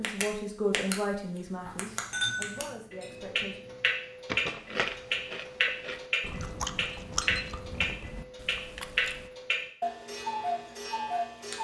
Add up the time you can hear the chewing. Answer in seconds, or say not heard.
5 s.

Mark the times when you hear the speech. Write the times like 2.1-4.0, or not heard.
0.0-3.5.